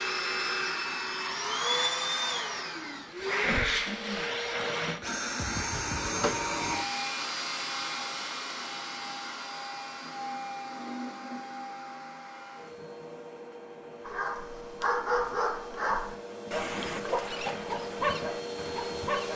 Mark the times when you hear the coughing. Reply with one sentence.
The coughing can be heard from 3.5 to 4.4 s.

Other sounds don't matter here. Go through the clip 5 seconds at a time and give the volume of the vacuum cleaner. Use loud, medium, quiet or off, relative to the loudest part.
loud, loud, medium, medium.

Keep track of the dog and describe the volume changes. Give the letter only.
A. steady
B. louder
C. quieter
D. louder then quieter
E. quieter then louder
A.